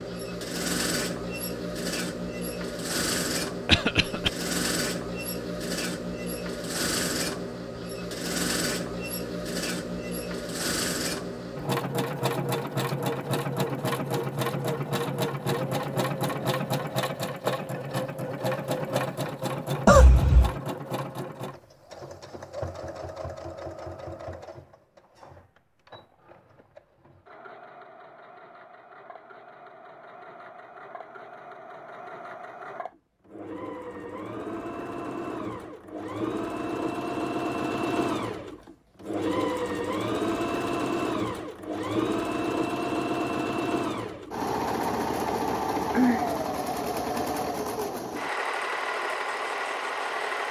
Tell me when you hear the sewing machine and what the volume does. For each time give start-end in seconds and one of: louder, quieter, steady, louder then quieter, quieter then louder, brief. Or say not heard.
0.0-50.4 quieter then louder.